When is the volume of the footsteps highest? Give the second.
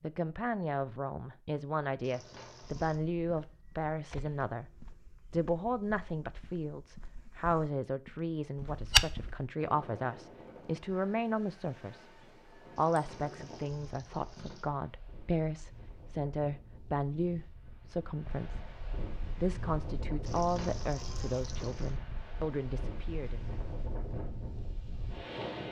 9 s.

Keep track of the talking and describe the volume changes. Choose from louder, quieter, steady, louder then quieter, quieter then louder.
steady.